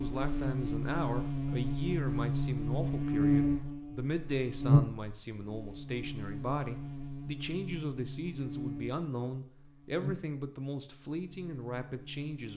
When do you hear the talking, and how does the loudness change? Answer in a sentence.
You can hear the talking from 0.0 to 12.5 s, at a steady volume.